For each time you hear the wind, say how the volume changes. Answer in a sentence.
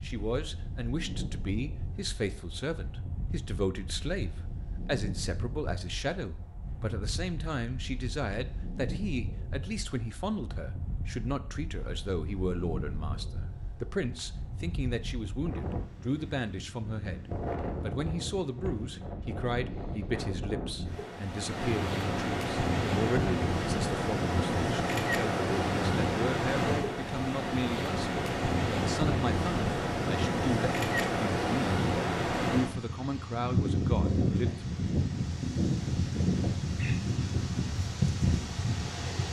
You can hear the wind from 0.0 to 39.2 s, getting louder.